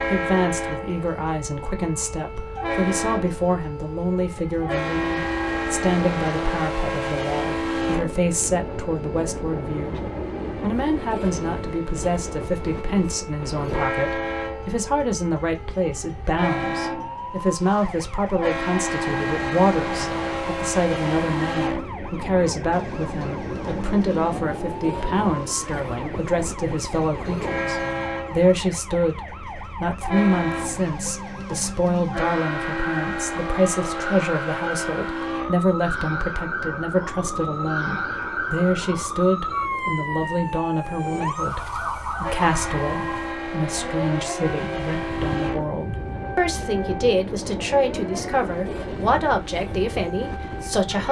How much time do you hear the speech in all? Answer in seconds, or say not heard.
50 s.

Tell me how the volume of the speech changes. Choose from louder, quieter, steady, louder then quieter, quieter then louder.
steady.